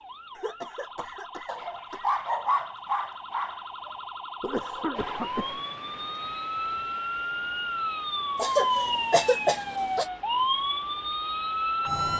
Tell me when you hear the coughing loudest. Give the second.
9 s.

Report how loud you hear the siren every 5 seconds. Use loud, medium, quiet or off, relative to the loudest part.
quiet, loud, loud.